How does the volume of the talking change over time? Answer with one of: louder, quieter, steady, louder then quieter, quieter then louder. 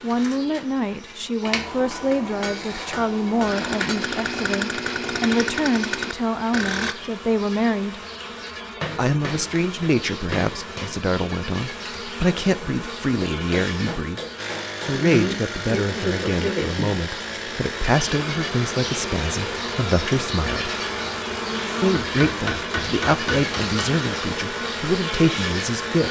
steady.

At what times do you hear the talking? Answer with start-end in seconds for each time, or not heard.
0.0-8.0, 8.9-14.2, 14.8-20.8, 21.8-26.0.